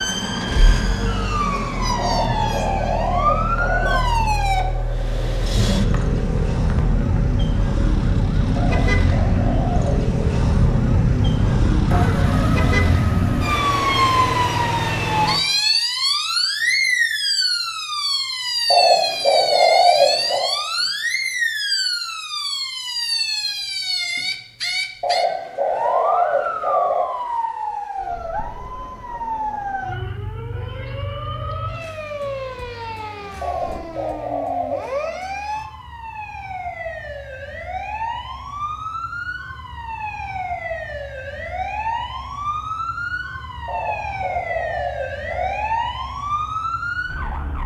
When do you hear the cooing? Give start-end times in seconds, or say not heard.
1.9-4.0, 8.6-10.0, 18.7-20.5, 25.0-27.1, 33.4-35.0, 43.6-45.6.